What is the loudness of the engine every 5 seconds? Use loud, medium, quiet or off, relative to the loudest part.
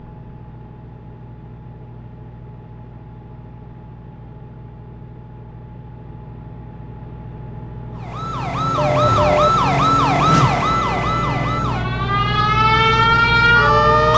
quiet, medium, loud.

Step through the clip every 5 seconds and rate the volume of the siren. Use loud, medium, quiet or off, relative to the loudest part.
off, loud, loud.